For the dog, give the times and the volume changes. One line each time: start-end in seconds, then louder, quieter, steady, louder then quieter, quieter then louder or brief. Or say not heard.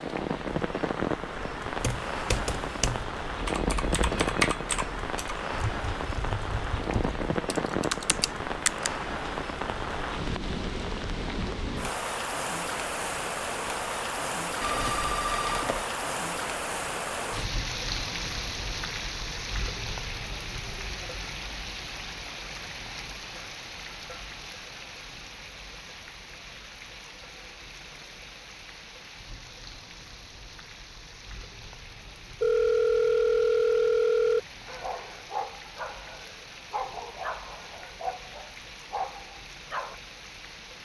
34.6-40.0 steady.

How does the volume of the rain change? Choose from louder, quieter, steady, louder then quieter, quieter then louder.
quieter.